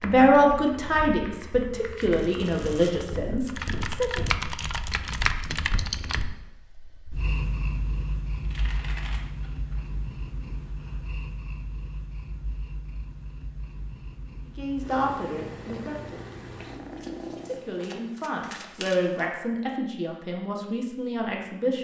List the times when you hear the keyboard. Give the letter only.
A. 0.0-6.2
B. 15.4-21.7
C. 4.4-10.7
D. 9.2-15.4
A.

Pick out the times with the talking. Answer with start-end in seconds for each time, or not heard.
0.0-4.2, 14.6-16.4, 17.4-21.7.